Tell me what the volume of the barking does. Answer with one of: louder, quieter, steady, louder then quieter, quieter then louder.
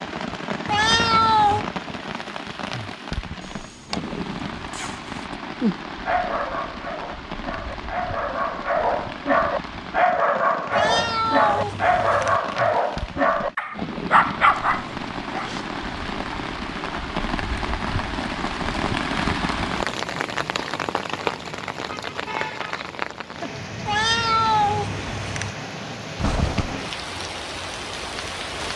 louder.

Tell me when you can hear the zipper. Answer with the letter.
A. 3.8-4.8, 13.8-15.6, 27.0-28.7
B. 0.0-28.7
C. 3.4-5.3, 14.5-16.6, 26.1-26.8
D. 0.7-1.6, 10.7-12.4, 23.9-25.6
C.